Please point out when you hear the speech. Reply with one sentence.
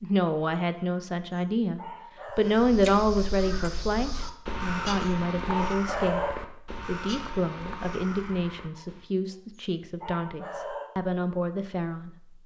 The speech can be heard from 0.0 to 12.1 s.